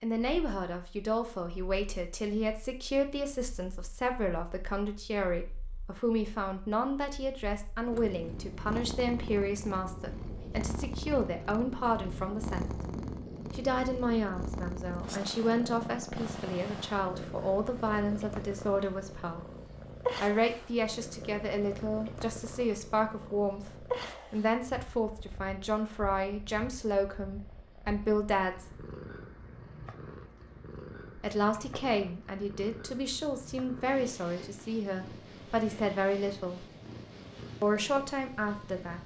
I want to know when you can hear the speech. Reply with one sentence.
The speech can be heard from 0.0 to 12.7 s, from 13.5 to 19.4 s, from 20.2 to 28.9 s, from 31.1 to 36.6 s and from 37.6 to 39.0 s.